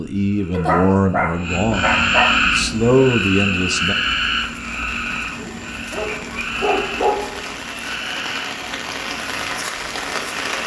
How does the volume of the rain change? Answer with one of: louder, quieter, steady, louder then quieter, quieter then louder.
louder.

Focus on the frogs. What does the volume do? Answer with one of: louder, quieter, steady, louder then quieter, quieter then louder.
quieter.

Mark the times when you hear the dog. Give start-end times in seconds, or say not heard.
0.5-2.4, 5.3-7.5.